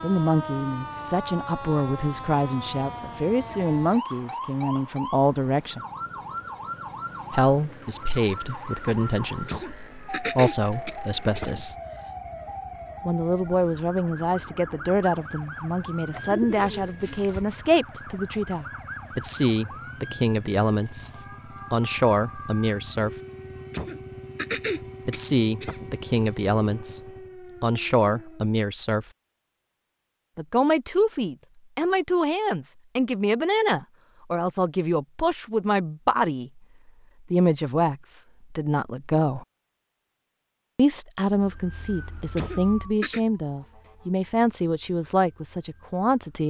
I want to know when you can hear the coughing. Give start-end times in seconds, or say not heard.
9.4-12.0, 23.7-25.9, 42.4-43.2.